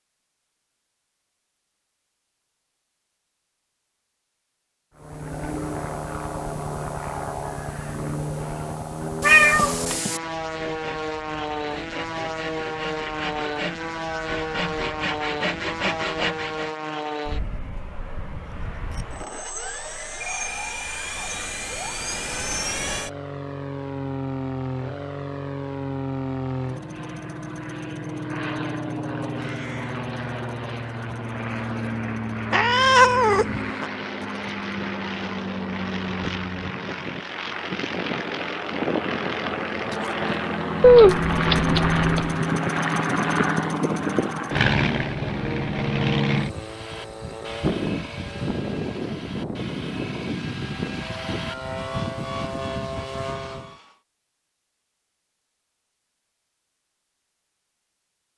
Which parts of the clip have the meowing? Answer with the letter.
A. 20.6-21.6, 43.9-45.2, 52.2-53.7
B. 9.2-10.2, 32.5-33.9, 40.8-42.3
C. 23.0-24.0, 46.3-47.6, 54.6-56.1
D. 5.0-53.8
B.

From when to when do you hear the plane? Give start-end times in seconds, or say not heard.
5.0-53.8.